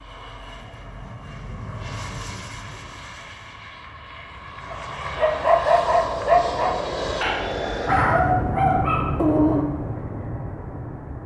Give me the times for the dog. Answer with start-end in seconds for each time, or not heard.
4.7-9.7.